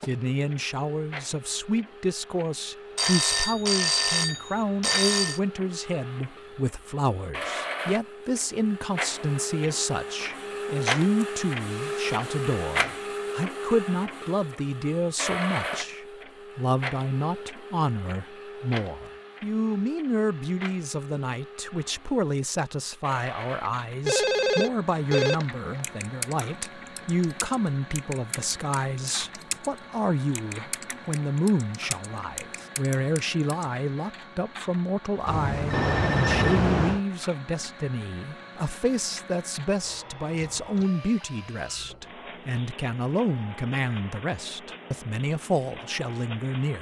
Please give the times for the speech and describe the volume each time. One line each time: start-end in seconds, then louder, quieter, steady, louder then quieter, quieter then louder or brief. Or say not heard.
0.1-46.7 steady.